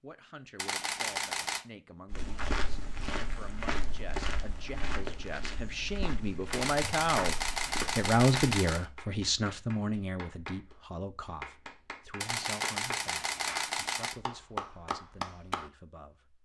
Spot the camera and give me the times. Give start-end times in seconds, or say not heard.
0.6-1.6, 6.5-8.8, 12.2-14.2.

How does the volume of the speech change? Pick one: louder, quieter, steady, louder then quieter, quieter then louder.
louder then quieter.